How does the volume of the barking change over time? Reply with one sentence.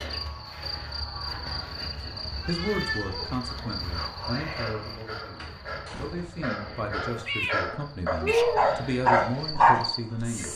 The volume of the barking goes up.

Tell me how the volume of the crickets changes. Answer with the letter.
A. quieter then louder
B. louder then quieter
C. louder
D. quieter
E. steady
A.